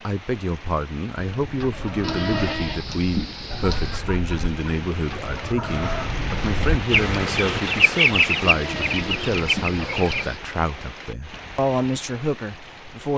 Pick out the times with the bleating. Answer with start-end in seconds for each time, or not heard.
2.0-4.0, 8.4-10.4.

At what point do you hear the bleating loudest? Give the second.
3 s.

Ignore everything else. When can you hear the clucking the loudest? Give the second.
8 s.